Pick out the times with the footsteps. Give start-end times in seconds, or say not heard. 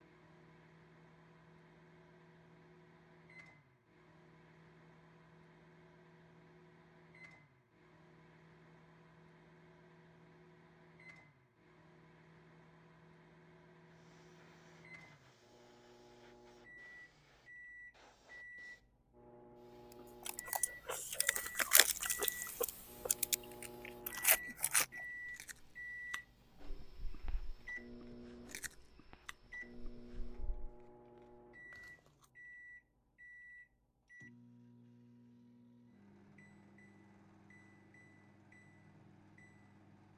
not heard.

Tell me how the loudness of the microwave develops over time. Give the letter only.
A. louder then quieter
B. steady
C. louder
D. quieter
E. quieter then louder
A.